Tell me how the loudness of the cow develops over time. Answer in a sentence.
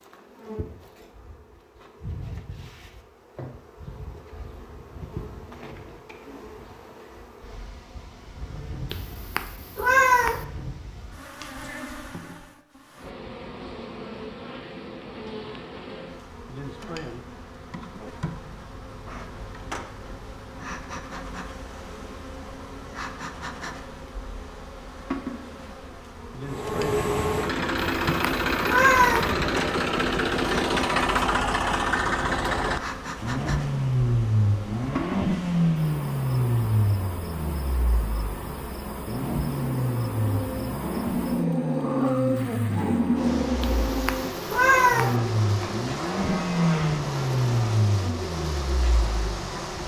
The volume of the cow goes up, then down.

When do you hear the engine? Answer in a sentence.
The engine can be heard from 26.4 to 49.8 s.